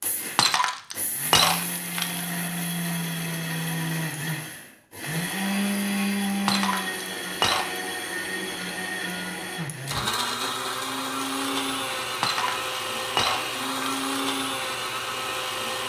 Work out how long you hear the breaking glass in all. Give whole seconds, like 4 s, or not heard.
5 s.